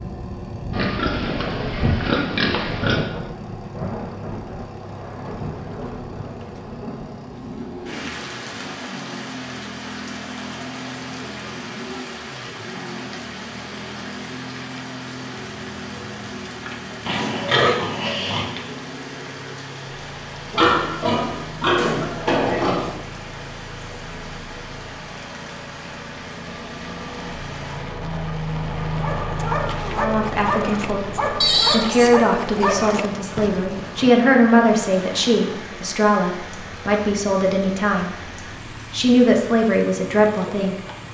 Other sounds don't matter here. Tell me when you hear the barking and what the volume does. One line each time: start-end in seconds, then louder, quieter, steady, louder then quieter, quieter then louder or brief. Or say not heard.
29.0-34.2 quieter.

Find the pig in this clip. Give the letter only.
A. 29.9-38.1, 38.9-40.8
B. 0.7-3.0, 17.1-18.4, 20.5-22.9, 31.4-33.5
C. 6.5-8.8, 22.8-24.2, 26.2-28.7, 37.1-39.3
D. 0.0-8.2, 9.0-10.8
B.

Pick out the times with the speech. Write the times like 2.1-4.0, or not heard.
29.9-38.1, 38.9-40.8.